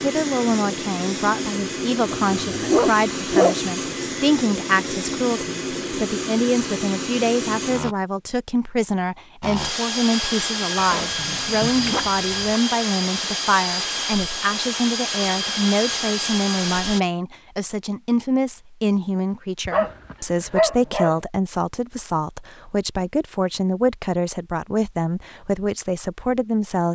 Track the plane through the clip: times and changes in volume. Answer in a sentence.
The plane can be heard from 0.0 to 8.0 s, at a steady volume; and from 9.4 to 17.0 s, at a steady volume.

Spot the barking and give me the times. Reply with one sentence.
You can hear the barking from 2.1 to 3.5 s, from 11.0 to 12.6 s and from 19.6 to 21.1 s.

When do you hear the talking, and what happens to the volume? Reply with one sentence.
The talking can be heard from 0.0 to 26.9 s, at a steady volume.